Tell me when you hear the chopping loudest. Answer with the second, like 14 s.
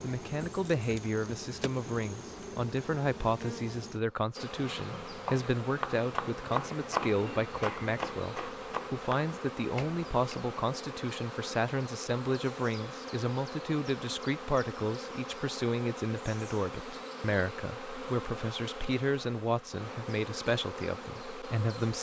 7 s.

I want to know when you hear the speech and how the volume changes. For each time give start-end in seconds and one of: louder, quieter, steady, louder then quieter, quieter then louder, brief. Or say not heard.
0.0-21.9 steady.